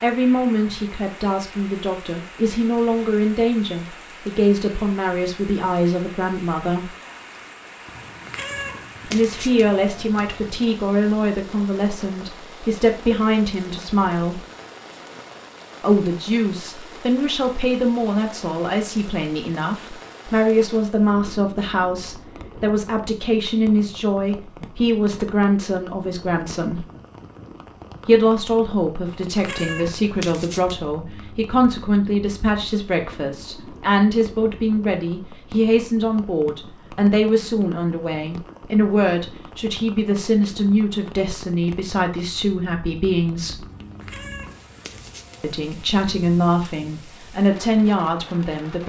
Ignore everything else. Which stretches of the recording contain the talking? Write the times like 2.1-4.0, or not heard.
0.0-6.9, 9.1-14.4, 15.8-26.9, 28.1-43.6, 45.4-48.8.